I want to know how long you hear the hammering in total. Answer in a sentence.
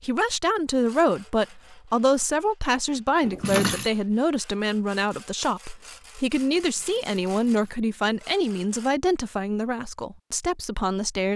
You can't hear the hammering here.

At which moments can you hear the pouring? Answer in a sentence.
You can hear the pouring from 3.2 to 3.9 s and from 6.4 to 7.8 s.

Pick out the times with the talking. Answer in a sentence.
The talking can be heard from 0.0 to 11.3 s.